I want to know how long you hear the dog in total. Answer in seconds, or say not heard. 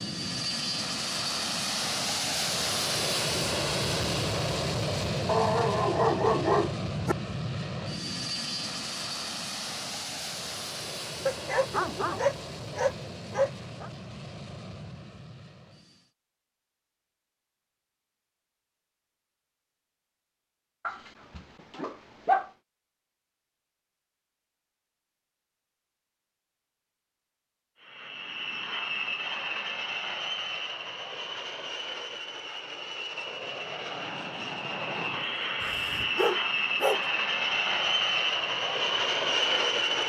8 s.